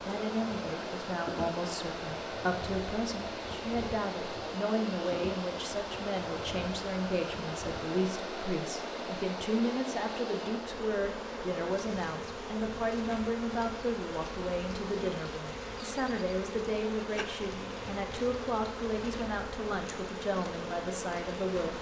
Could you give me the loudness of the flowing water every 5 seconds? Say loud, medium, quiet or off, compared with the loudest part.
loud, loud, medium, medium, medium.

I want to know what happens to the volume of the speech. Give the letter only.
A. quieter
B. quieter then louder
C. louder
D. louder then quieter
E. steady
E.